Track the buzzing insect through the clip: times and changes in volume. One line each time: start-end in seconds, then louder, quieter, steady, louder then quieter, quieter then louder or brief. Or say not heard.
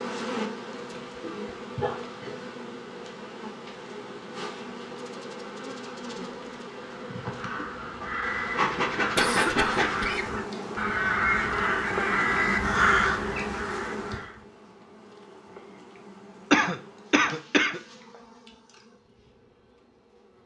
0.0-20.4 louder then quieter.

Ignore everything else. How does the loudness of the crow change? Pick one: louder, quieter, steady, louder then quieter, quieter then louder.
louder.